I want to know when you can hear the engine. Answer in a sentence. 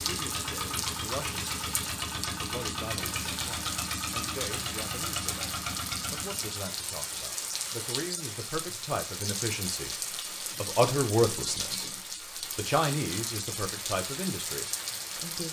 You can hear the engine from 0.0 to 6.7 s.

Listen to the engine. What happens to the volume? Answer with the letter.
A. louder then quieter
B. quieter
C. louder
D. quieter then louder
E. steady
E.